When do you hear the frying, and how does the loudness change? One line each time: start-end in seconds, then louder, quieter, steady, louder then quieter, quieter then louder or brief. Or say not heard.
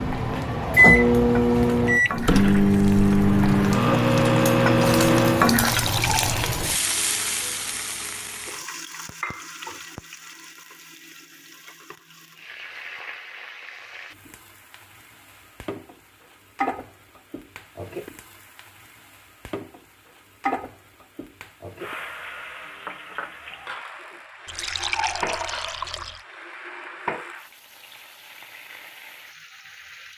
0.0-30.1 quieter.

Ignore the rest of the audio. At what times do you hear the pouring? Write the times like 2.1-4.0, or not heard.
5.7-6.4, 24.4-26.2.